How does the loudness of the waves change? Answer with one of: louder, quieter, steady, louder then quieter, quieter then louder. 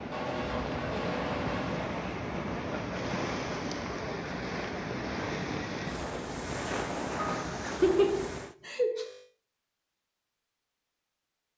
steady.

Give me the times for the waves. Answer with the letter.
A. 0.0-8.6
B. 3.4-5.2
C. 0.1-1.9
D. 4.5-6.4
A.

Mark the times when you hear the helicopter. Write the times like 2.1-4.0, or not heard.
0.1-1.9.